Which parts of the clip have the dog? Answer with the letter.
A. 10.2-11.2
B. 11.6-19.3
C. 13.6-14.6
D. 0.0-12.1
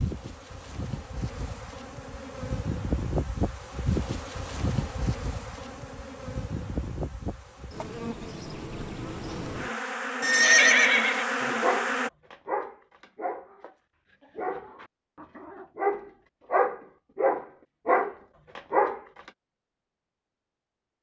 B.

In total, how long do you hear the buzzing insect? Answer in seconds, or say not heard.
12 s.